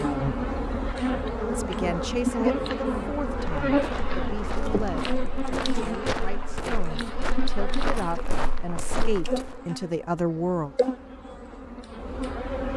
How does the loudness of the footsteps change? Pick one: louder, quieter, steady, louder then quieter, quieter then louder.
louder.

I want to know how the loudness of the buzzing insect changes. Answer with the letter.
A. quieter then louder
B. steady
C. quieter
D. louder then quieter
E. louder
C.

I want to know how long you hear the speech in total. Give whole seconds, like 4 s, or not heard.
9 s.